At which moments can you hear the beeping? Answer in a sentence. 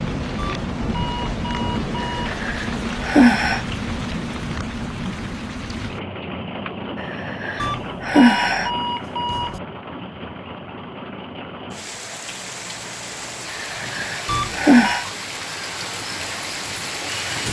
The beeping can be heard from 0.3 to 2.4 s, from 7.5 to 9.6 s and from 14.2 to 15.1 s.